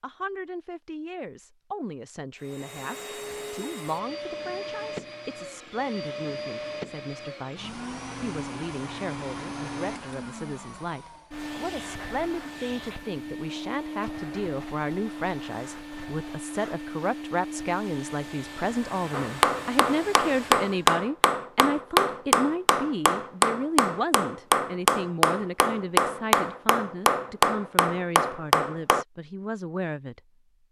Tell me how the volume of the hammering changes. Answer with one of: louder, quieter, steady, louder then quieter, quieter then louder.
steady.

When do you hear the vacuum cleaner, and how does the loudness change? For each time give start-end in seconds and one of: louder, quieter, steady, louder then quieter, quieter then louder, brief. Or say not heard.
2.4-20.9 steady.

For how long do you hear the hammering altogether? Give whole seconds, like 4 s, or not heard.
10 s.